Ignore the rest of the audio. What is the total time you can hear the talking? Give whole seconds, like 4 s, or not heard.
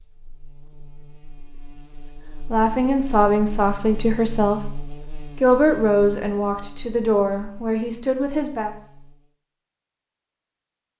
6 s.